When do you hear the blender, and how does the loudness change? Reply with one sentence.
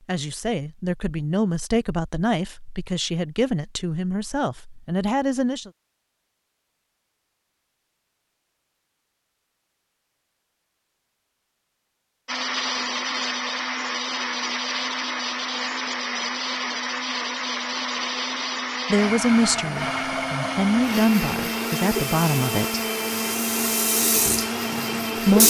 You can hear the blender from 12.2 to 25.4 s, at a steady volume.